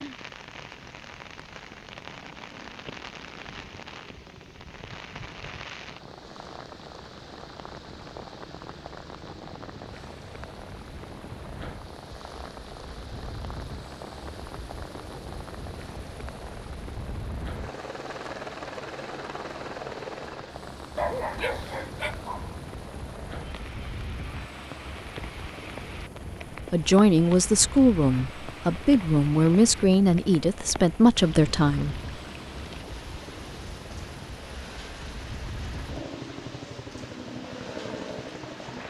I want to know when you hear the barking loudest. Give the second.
21 s.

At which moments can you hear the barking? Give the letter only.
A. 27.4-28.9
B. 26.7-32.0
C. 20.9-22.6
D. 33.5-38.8
C.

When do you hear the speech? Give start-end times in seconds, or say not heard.
26.7-32.0.